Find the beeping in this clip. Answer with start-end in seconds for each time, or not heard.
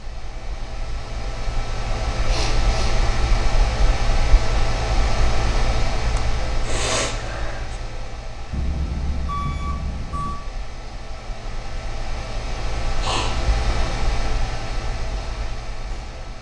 8.5-10.4.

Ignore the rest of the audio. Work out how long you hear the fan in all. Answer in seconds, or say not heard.
16 s.